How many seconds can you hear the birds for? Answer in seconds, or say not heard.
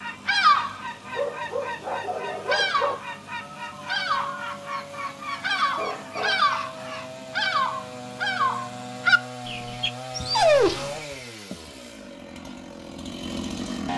10 s.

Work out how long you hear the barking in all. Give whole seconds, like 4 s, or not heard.
3 s.